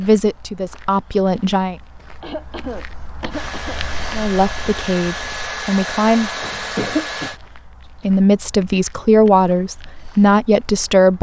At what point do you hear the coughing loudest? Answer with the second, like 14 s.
7 s.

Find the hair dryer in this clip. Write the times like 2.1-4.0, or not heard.
3.3-7.4.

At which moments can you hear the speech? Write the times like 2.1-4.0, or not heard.
0.0-1.8, 4.1-6.3, 8.0-11.1.